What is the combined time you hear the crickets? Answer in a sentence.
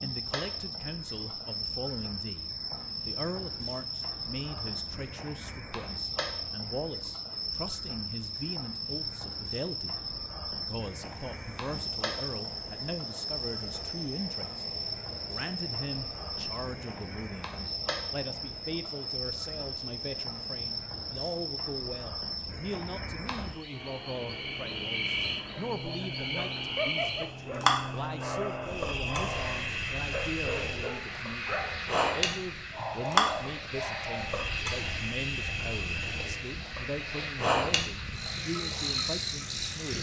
You can hear the crickets for 40 seconds altogether.